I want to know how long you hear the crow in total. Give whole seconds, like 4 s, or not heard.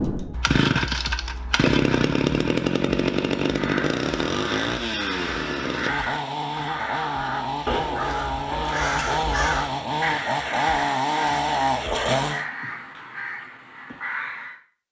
11 s.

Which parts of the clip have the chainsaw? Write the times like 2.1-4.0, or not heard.
0.0-12.4.